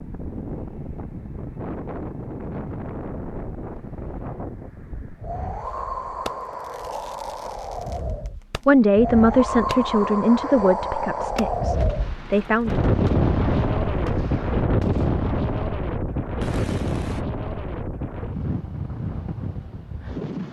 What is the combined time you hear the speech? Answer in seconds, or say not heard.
4 s.